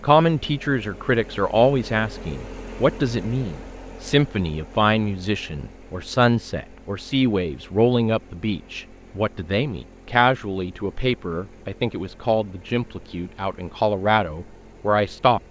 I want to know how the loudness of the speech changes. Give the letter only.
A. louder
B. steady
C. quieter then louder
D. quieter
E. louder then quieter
B.